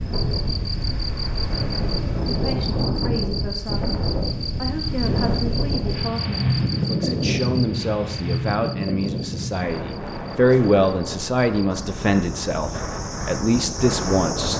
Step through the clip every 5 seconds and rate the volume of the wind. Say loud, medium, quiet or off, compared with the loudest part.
loud, loud, medium.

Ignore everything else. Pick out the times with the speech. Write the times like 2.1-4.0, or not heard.
2.2-4.0, 4.5-14.5.